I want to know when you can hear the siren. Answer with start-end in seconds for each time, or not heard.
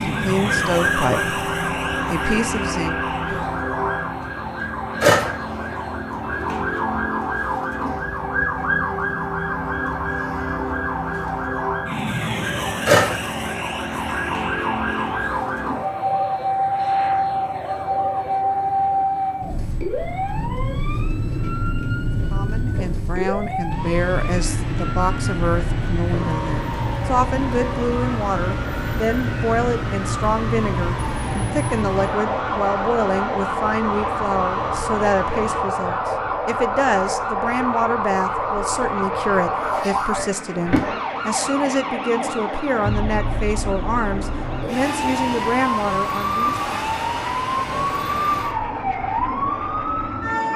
0.0-50.5.